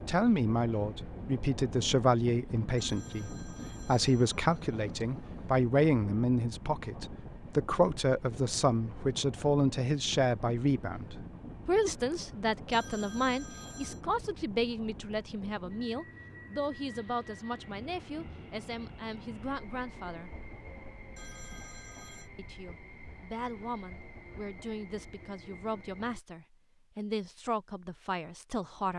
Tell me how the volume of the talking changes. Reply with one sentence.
The volume of the talking goes down.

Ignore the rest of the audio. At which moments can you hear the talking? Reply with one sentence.
The talking can be heard from 0.1 to 20.3 s and from 22.4 to 28.9 s.